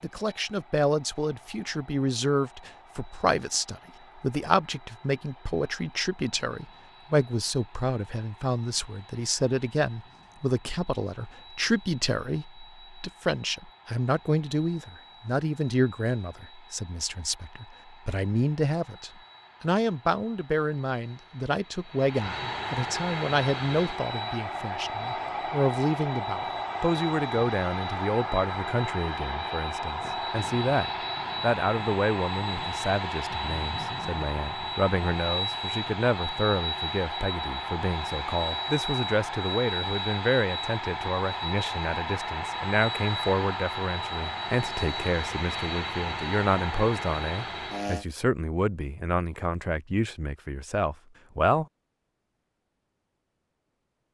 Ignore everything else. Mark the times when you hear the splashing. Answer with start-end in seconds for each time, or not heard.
not heard.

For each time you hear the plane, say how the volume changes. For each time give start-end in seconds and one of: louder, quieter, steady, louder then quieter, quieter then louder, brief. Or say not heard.
0.0-48.0 louder.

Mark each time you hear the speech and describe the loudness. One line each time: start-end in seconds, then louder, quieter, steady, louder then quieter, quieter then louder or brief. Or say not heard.
0.0-51.6 steady.